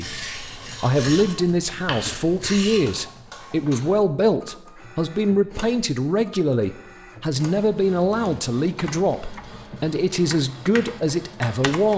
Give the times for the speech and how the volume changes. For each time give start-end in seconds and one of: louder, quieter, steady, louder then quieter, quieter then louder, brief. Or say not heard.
0.0-11.9 steady.